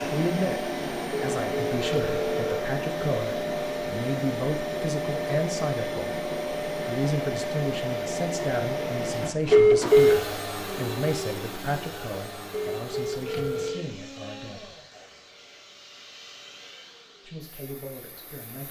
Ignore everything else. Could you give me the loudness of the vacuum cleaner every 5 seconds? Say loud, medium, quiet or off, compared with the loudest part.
loud, loud, medium, quiet.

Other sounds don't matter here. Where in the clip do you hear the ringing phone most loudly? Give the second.
10 s.